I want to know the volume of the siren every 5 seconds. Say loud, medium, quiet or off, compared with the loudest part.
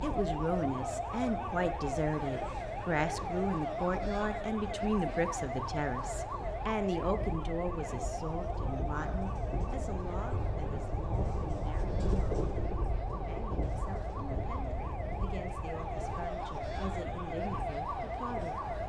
loud, loud, medium, loud.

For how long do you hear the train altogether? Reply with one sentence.
You can hear the train for 19 seconds altogether.